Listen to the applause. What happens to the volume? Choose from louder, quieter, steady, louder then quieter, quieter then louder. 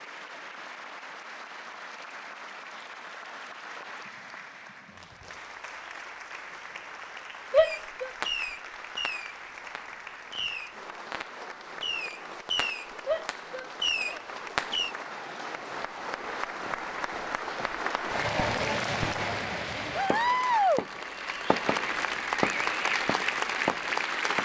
louder.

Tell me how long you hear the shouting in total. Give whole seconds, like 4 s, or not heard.
2 s.